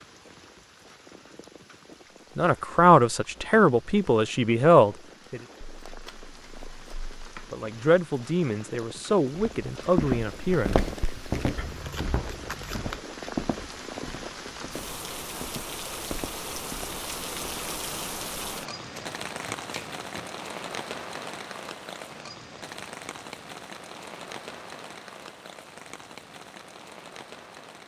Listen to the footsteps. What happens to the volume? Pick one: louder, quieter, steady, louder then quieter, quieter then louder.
quieter.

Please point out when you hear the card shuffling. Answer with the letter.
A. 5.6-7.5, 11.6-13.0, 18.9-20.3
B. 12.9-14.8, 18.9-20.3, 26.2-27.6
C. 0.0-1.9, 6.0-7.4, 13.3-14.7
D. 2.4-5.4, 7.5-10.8
A.